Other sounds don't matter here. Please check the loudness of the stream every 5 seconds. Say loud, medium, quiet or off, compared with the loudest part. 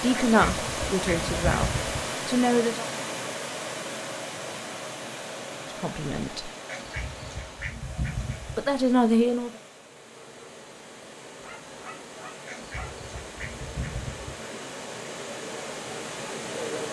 loud, medium, medium, loud.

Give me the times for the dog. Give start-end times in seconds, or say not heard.
11.4-13.1.